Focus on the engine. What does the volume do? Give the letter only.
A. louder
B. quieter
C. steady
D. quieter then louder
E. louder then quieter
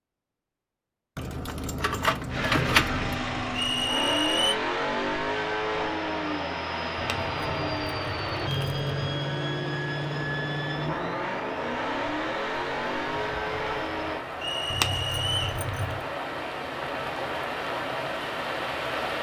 C.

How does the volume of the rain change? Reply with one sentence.
The loudness of the rain goes up.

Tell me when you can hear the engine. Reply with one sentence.
The engine can be heard from 2.2 to 14.2 s.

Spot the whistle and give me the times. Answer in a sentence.
You can hear the whistle from 3.5 to 4.5 s and from 14.4 to 15.6 s.